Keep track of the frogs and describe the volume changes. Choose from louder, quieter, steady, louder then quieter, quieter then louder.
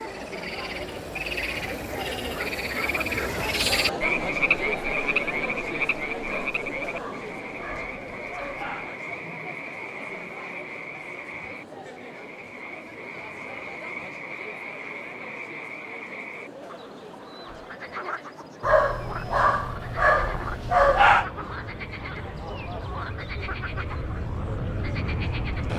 quieter.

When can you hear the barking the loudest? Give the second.
21 s.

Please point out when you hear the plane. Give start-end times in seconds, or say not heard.
19.1-25.7.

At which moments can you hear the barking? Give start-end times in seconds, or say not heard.
6.2-8.9, 18.6-21.2.